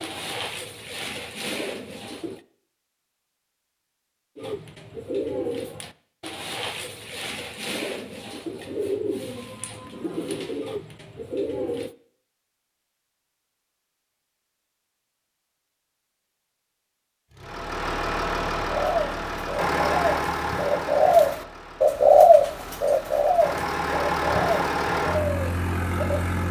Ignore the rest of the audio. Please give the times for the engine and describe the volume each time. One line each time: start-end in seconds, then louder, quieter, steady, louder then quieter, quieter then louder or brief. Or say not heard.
17.3-26.4 quieter then louder.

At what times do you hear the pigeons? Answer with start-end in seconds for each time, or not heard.
0.0-2.4, 4.3-11.9, 18.6-26.2.